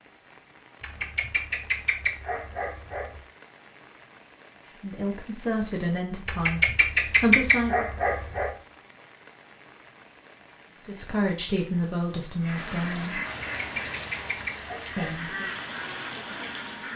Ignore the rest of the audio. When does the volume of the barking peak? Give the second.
7 s.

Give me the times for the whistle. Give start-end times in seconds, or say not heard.
not heard.